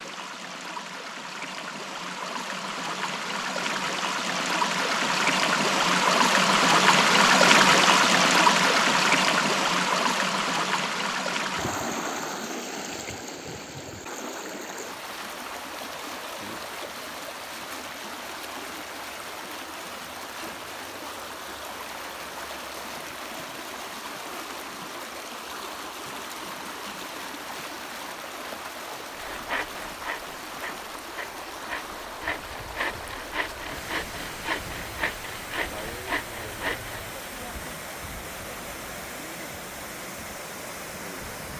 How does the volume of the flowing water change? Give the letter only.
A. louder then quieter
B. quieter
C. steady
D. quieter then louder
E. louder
B.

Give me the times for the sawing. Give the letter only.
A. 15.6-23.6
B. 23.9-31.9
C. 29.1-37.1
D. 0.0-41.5
C.